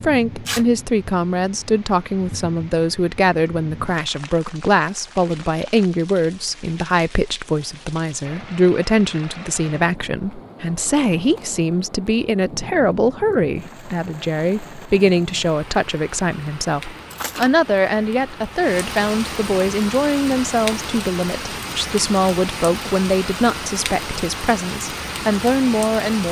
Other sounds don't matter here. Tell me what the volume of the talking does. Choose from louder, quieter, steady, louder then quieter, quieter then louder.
steady.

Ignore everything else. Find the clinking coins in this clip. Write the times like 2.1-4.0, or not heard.
not heard.